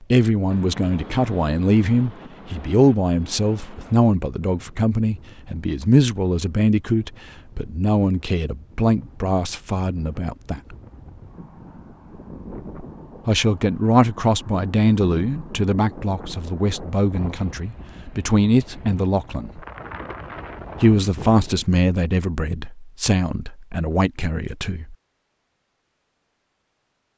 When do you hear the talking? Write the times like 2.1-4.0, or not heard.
0.0-10.8, 13.2-19.6, 20.8-24.9.